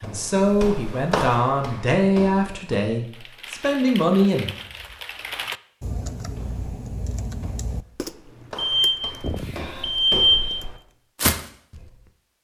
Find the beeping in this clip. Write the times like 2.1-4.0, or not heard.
8.6-10.6.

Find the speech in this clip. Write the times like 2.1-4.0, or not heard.
0.0-4.5.